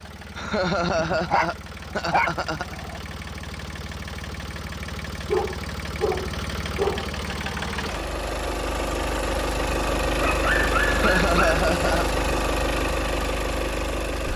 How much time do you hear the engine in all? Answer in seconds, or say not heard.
14 s.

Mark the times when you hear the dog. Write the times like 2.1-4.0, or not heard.
0.9-3.0, 5.2-7.1, 10.1-11.7.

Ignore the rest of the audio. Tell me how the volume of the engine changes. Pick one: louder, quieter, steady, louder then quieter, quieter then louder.
louder.